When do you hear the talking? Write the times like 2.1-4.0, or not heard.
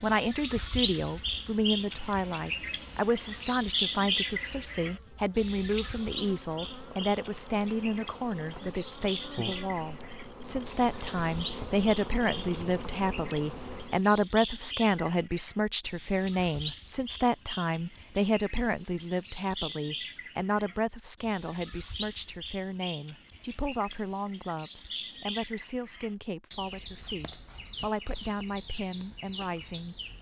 0.0-30.1.